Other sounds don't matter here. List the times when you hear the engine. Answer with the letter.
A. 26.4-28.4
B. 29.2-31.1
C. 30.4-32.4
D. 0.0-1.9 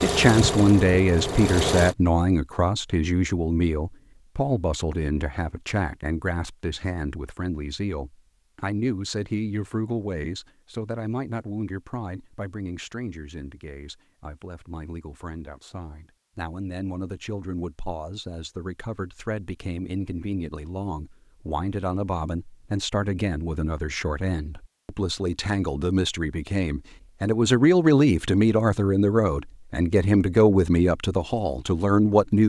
D.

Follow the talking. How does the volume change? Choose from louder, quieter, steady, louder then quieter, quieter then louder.
quieter then louder.